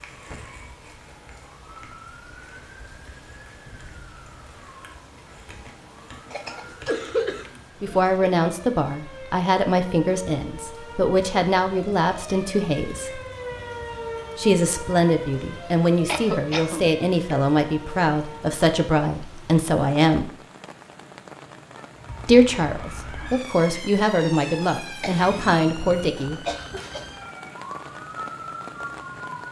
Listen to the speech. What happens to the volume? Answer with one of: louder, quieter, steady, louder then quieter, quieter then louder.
steady.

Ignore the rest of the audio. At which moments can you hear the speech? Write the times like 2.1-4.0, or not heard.
7.8-13.2, 14.3-20.3, 22.2-26.4.